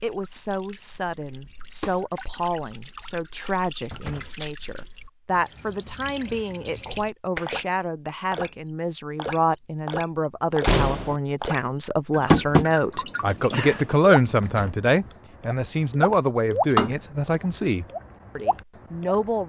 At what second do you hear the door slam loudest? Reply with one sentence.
The loudest moment of the door slam is at 11 seconds.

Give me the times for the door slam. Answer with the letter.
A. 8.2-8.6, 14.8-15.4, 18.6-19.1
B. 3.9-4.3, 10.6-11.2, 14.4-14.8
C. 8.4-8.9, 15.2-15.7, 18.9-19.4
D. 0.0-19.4
B.